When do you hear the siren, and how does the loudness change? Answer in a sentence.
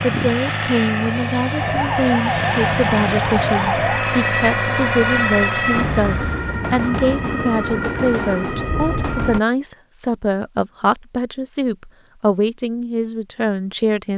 The siren can be heard from 1.6 to 9.4 s, at a steady volume.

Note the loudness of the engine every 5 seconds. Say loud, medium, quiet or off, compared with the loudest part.
loud, loud, off.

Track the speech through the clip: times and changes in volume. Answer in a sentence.
You can hear the speech from 0.0 to 14.1 s, at a steady volume.